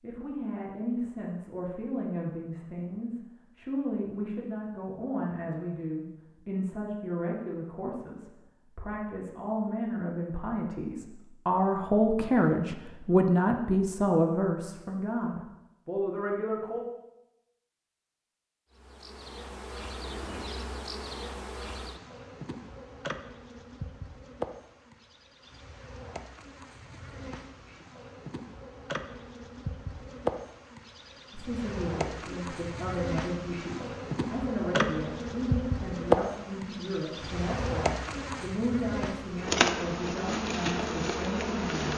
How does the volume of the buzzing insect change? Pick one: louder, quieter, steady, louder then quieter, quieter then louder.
louder.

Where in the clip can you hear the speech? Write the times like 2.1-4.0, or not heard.
0.0-16.9, 31.3-41.9.